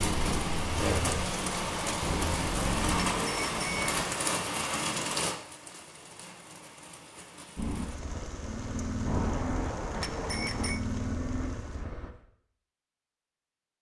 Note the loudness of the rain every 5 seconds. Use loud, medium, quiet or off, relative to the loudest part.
loud, medium, quiet.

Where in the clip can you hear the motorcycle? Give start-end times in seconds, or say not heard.
0.2-3.1, 7.5-12.1.